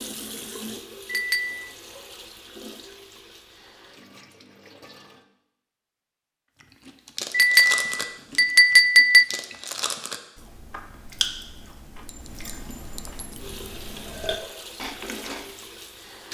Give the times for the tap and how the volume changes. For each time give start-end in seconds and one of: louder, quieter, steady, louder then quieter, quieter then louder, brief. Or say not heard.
0.0-5.2 quieter
13.3-16.2 brief.